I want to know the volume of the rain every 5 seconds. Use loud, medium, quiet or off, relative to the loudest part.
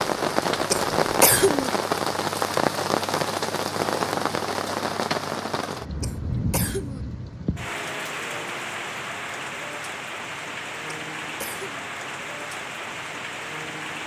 loud, medium, medium.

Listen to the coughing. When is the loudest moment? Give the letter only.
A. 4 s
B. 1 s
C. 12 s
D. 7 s
B.